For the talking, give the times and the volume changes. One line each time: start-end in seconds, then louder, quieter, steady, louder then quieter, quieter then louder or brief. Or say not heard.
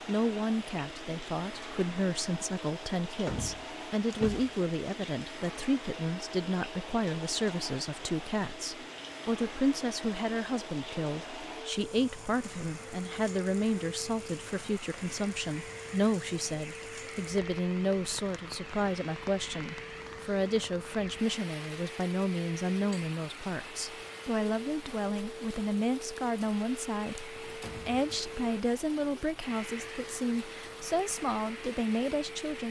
0.1-32.6 steady.